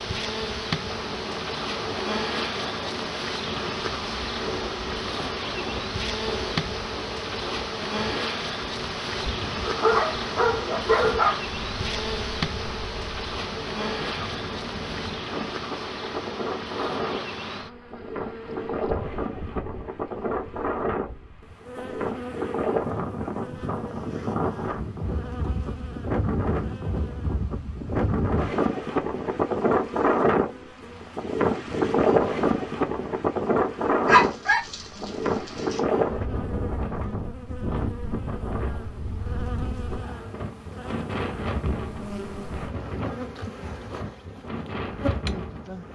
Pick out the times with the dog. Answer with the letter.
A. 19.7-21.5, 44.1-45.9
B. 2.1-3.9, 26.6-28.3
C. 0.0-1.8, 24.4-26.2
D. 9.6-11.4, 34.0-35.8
D.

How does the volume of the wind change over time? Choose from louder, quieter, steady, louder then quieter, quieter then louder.
louder then quieter.